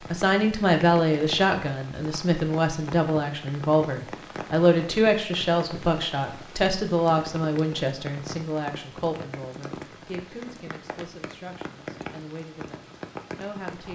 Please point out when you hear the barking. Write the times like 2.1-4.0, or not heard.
not heard.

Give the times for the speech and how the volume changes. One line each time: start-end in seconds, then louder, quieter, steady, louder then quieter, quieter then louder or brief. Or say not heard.
0.0-13.9 quieter.